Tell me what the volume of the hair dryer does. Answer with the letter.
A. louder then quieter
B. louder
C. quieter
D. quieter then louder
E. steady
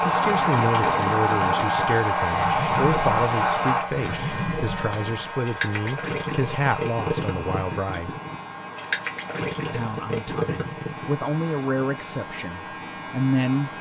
C.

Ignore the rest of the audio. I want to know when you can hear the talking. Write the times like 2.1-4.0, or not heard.
0.0-8.2, 9.7-13.7.